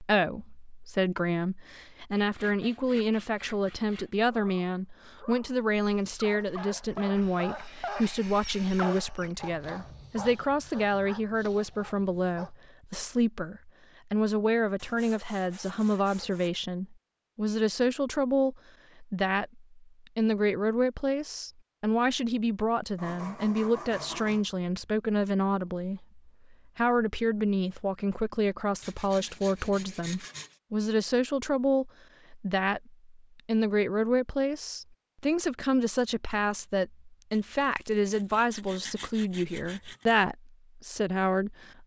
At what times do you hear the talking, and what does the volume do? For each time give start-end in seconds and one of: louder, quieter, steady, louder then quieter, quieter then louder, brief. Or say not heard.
0.0-41.8 steady.